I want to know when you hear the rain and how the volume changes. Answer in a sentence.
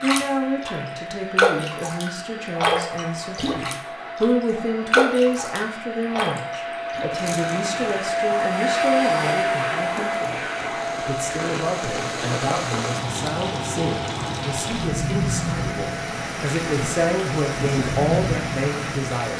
The rain can be heard from 0.0 to 19.3 s, getting quieter then louder.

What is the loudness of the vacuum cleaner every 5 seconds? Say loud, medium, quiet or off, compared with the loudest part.
medium, loud, medium, medium.